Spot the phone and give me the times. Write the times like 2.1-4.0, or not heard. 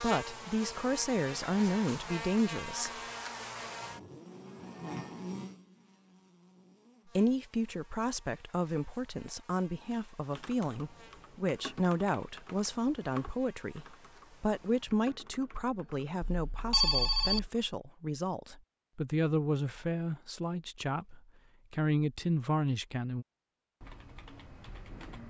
16.2-17.5.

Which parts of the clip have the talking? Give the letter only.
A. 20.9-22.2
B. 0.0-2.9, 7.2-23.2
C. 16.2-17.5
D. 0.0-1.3
B.